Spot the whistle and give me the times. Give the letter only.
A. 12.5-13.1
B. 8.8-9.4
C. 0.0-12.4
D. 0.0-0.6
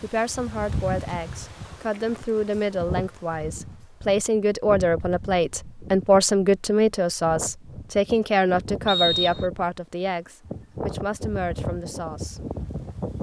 B.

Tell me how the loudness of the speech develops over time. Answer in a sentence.
The volume of the speech goes up, then down.